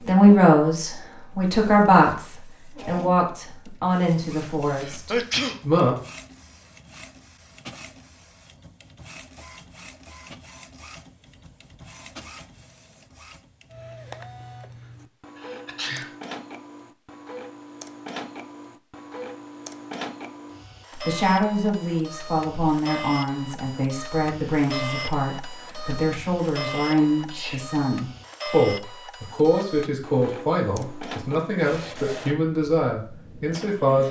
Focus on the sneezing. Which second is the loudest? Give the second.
5 s.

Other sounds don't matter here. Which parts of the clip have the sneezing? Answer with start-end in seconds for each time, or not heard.
4.8-5.5, 15.3-16.1, 27.1-27.6.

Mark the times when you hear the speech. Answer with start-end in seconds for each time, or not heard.
0.1-6.0, 20.9-34.0.